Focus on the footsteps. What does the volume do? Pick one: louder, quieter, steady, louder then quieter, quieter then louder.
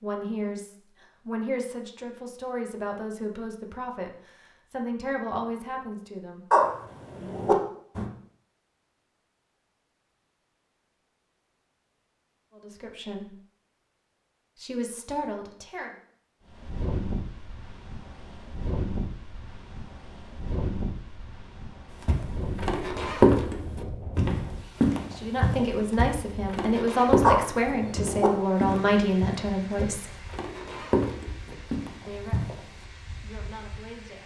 quieter.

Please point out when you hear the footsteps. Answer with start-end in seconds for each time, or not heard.
22.1-32.6.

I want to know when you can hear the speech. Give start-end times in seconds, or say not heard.
0.0-6.5, 12.6-13.3, 14.6-15.9, 25.1-30.1, 32.0-34.2.